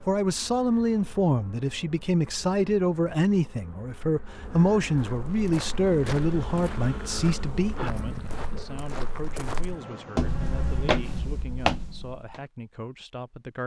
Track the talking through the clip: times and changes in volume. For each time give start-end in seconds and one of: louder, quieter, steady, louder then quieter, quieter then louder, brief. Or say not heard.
0.0-13.6 quieter.